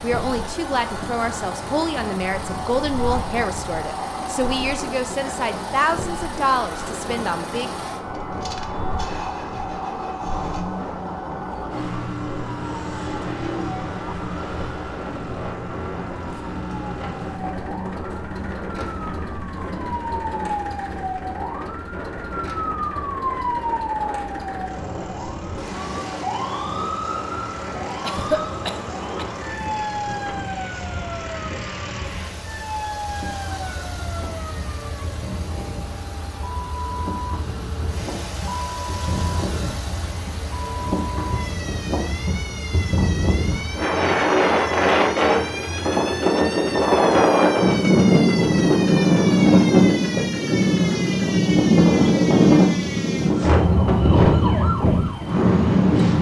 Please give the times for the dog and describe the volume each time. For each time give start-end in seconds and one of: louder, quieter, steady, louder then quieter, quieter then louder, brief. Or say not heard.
not heard.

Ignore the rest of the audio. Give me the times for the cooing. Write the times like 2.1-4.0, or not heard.
not heard.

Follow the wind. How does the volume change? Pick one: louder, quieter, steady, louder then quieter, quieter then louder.
louder.